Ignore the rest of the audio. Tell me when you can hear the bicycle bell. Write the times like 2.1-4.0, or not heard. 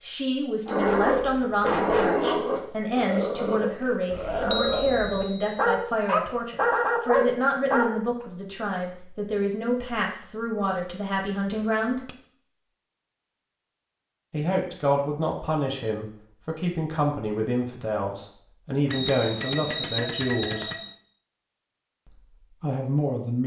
4.5-5.5, 12.1-12.8, 18.9-20.9.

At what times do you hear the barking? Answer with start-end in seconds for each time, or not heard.
0.7-8.2.